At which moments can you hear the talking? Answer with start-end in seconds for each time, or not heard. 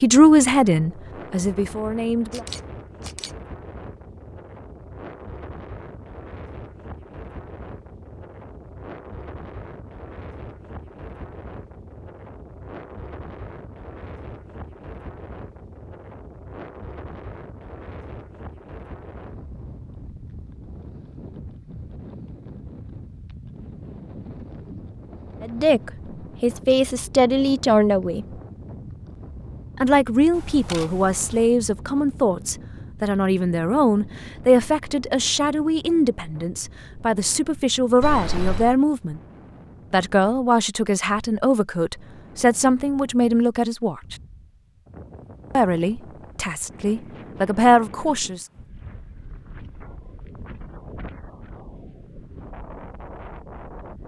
0.0-2.5, 25.4-28.2, 29.8-39.2, 39.9-44.1, 45.5-48.5.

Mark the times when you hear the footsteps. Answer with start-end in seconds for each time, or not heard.
not heard.